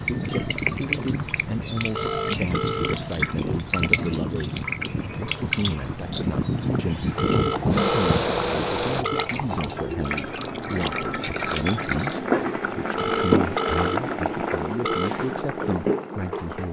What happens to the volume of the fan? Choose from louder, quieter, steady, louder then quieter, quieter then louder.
louder.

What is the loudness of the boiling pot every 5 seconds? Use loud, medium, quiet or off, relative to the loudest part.
quiet, medium, loud, loud.